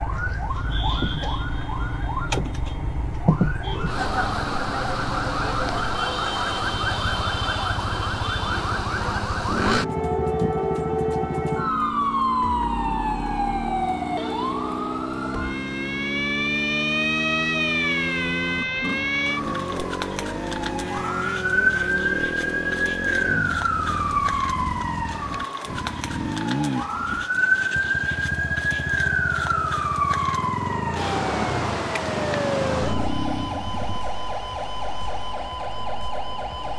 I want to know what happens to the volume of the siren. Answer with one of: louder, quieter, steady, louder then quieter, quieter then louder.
steady.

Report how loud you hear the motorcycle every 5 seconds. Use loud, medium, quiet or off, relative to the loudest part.
medium, medium, loud, loud, loud, loud, loud, off.